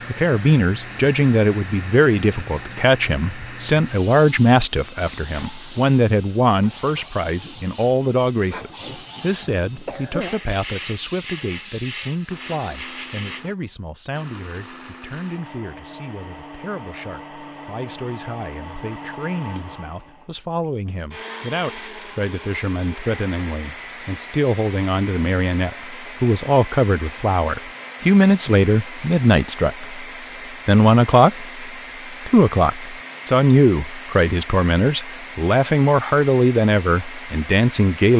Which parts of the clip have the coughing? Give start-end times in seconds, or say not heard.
9.6-10.4.